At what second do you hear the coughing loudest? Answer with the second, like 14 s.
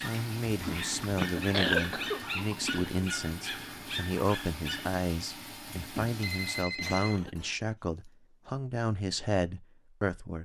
2 s.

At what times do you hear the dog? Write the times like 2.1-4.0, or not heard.
0.0-5.0.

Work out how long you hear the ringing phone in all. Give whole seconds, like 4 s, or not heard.
2 s.